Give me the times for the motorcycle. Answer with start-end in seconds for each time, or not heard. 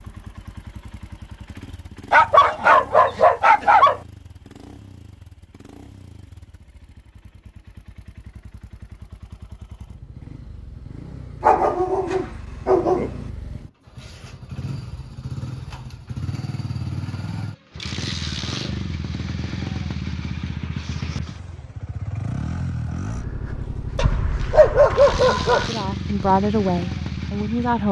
0.0-27.8.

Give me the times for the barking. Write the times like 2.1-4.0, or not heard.
2.1-4.0, 11.4-13.2, 23.9-25.7.